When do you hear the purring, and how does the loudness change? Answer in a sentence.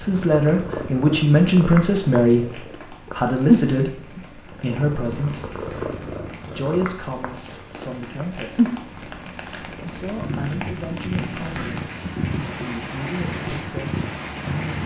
You can hear the purring from 0.0 to 14.8 s, getting louder then quieter.